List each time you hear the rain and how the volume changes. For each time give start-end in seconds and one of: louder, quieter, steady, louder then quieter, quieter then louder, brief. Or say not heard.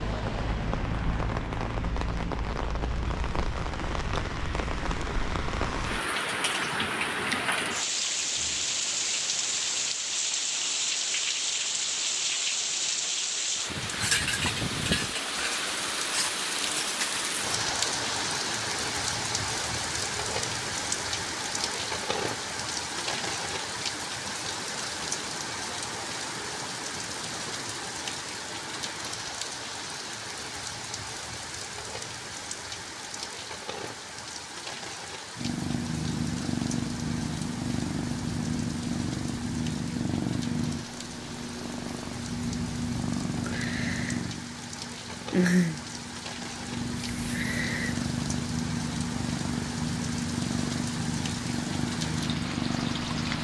0.0-53.3 quieter.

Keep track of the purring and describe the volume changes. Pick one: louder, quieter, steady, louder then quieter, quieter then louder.
steady.